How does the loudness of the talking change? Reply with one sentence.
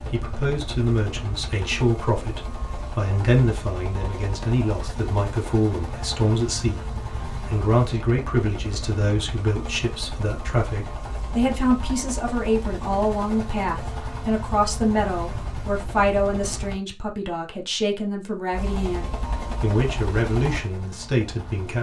The loudness of the talking stays about the same.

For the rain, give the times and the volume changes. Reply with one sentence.
The rain can't be heard in this clip.